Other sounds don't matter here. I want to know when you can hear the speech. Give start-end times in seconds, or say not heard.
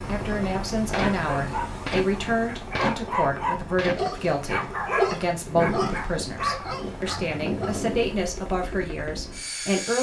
0.1-9.9.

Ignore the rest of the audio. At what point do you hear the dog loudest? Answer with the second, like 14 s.
5 s.